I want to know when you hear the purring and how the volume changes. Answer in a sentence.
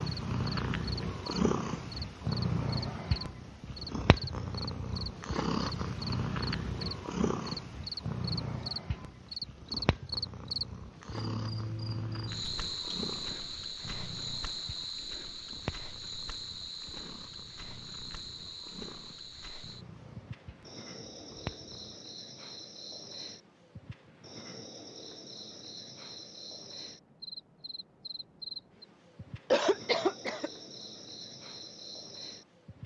The purring can be heard from 0.0 to 21.9 s, getting quieter.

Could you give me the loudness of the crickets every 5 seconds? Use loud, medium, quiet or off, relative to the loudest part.
loud, loud, loud, medium, medium, medium, medium.